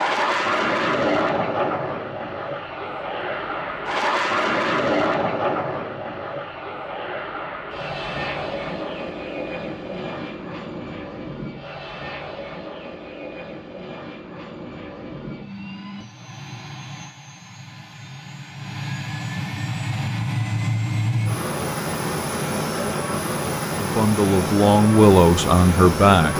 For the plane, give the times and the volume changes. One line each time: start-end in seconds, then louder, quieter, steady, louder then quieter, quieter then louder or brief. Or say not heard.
0.0-26.3 quieter then louder.